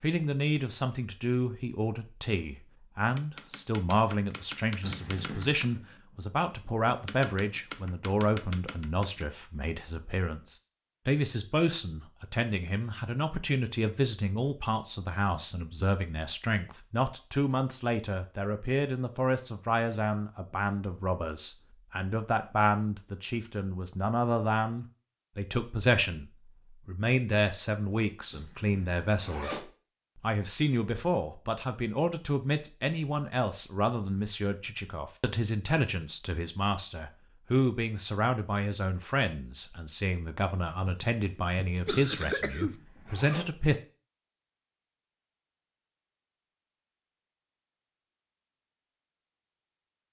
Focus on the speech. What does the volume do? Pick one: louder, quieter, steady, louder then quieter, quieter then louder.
steady.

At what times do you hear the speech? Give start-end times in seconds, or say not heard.
0.0-43.8.